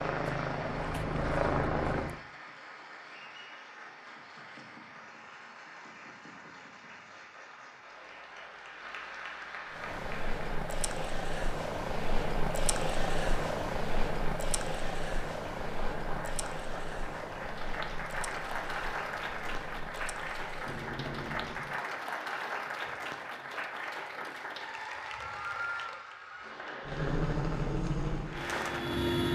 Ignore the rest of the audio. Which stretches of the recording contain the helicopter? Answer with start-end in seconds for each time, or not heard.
0.0-2.2, 9.7-21.8, 26.9-29.2.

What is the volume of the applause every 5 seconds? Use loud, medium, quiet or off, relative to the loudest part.
medium, medium, medium, loud, loud, loud.